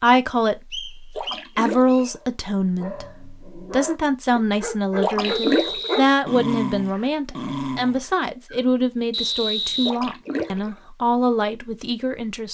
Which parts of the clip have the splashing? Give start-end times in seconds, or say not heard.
1.1-2.0, 5.0-5.9, 9.8-10.7.